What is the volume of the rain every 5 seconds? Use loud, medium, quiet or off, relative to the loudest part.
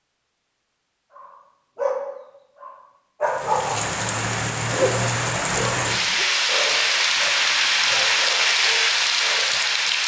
medium, loud.